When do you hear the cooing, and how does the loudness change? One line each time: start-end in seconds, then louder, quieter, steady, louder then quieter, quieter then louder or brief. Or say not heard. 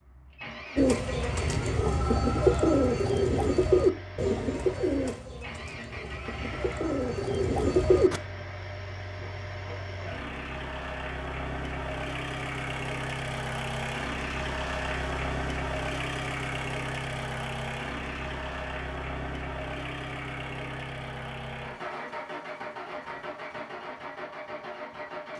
0.8-8.2 quieter then louder.